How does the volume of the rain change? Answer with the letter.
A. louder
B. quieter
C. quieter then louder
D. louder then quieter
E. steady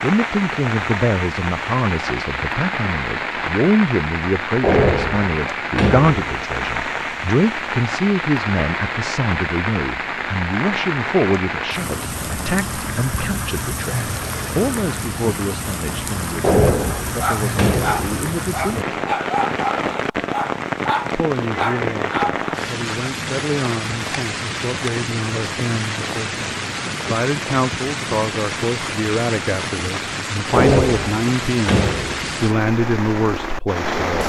E.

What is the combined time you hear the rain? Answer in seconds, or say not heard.
34 s.